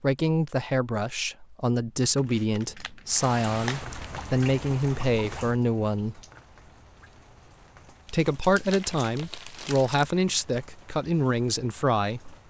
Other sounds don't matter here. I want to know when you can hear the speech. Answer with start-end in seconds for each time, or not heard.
0.0-6.2, 8.1-12.3.